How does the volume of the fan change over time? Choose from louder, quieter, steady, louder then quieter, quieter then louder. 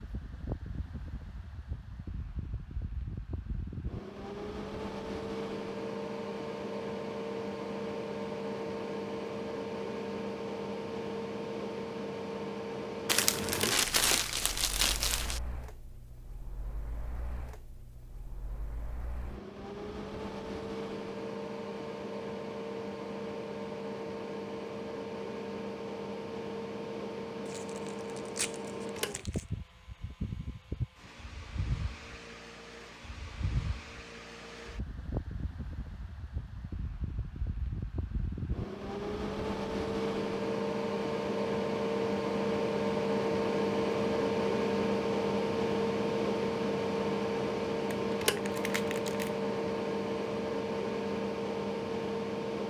louder.